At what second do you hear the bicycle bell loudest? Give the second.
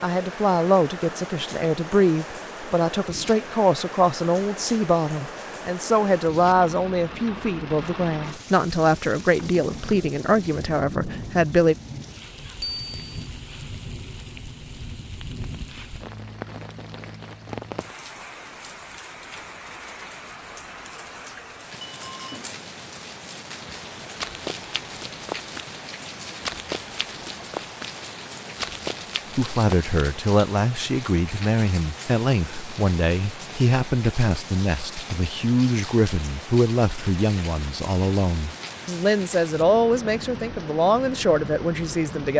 13 s.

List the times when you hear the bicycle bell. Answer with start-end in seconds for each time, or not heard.
12.6-13.3, 21.8-22.4.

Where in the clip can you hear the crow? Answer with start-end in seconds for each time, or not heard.
not heard.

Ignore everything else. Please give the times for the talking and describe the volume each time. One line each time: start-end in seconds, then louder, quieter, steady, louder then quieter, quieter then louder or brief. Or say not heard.
0.0-11.8 steady
29.4-42.3 steady.